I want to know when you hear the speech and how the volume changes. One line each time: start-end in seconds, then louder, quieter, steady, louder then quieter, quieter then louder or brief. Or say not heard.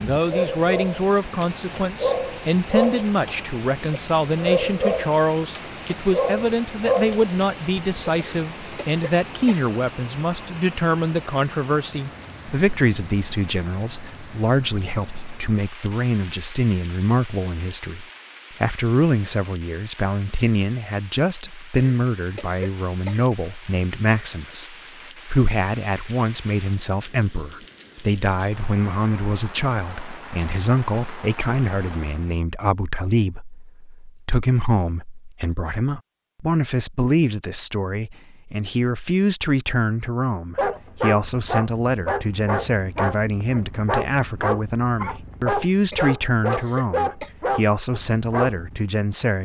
0.0-49.4 steady.